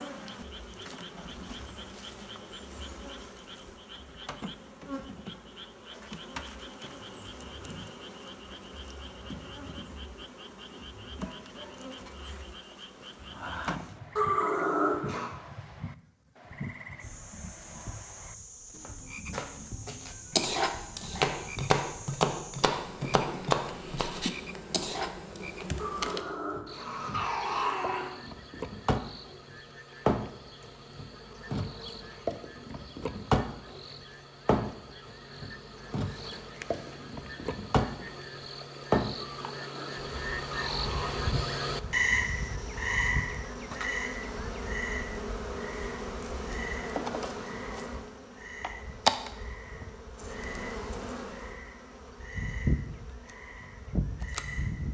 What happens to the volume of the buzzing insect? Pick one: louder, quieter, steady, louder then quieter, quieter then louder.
louder.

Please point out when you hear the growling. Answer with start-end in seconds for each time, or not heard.
14.2-15.3, 25.8-28.1, 39.1-41.2.